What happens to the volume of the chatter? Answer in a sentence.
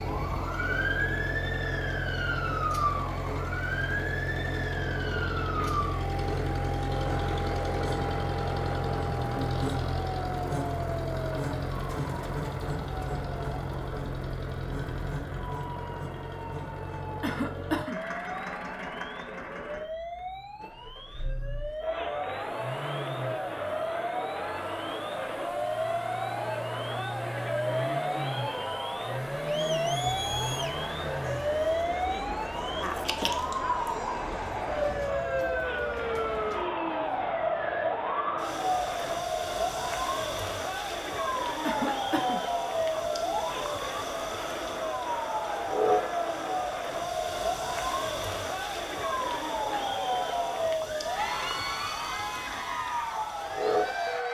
The volume of the chatter stays about the same.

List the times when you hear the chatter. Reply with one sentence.
You can hear the chatter from 21.8 to 54.2 s.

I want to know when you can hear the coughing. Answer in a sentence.
You can hear the coughing from 17.2 to 18.1 s and from 41.6 to 42.5 s.